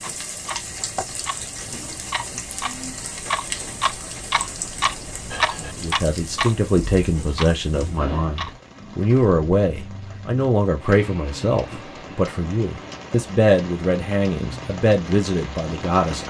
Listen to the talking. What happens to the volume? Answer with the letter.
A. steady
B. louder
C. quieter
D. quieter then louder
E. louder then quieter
A.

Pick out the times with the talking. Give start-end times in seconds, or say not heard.
5.6-16.2.